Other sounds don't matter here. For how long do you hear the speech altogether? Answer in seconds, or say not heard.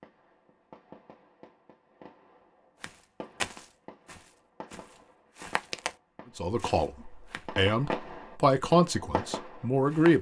4 s.